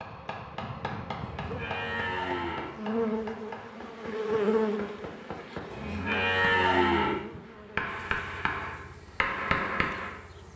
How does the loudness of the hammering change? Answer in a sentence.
The volume of the hammering goes up.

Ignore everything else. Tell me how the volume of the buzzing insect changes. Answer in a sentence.
The loudness of the buzzing insect goes up, then down.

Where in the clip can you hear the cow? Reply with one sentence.
You can hear the cow from 1.2 to 2.8 s and from 5.7 to 7.2 s.